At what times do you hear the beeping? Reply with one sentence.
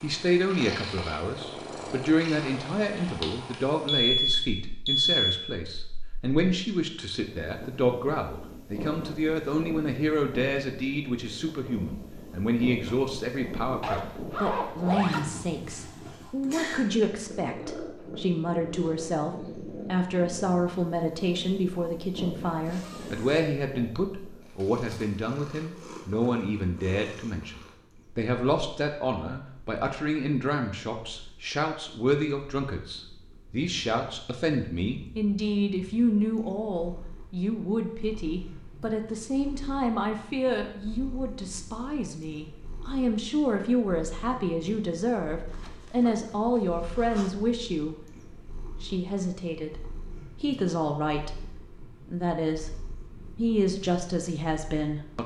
You can hear the beeping from 3.9 to 5.4 s.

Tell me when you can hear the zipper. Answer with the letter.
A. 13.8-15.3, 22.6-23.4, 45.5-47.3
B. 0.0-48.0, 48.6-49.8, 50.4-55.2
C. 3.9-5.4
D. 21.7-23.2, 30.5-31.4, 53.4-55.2
A.